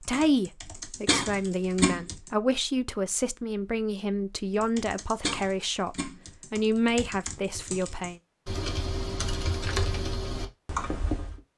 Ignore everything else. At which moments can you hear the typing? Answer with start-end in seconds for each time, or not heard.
0.0-2.3, 4.6-11.3.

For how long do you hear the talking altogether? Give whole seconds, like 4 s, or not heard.
8 s.